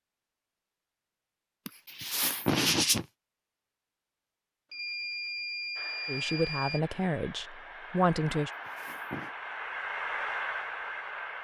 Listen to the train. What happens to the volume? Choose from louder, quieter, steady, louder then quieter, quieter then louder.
louder.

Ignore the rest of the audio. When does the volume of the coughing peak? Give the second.
3 s.